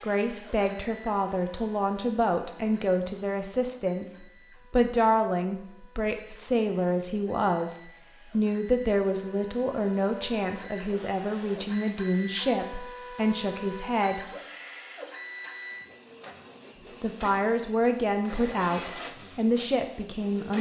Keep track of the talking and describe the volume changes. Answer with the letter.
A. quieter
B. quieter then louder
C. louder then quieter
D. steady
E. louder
D.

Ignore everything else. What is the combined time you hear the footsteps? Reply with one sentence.
The footsteps can't be heard in this clip.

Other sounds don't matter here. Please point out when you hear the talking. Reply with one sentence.
The talking can be heard from 0.0 to 14.2 s and from 17.0 to 20.5 s.